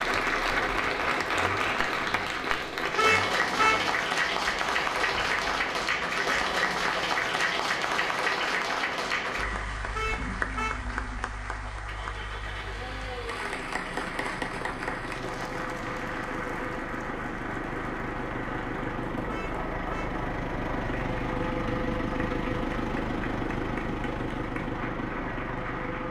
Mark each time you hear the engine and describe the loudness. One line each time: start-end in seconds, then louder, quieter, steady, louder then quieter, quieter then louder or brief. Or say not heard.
0.2-26.0 louder.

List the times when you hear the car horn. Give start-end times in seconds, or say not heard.
3.0-4.0, 9.9-10.8, 19.2-20.2.